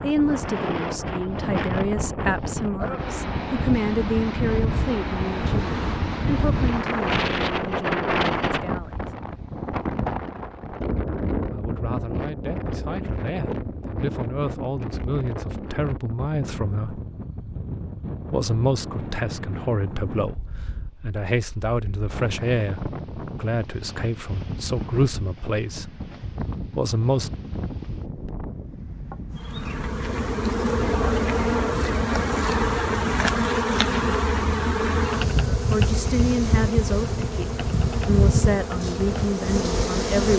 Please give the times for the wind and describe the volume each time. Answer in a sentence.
The wind can be heard from 0.0 to 30.2 s, getting quieter.